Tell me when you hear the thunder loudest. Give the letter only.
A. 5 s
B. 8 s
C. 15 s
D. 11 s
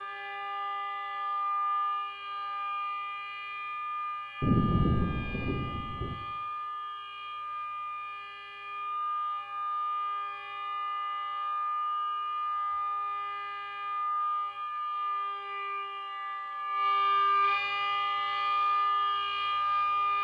A.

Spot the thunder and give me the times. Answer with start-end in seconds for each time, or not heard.
4.4-6.2.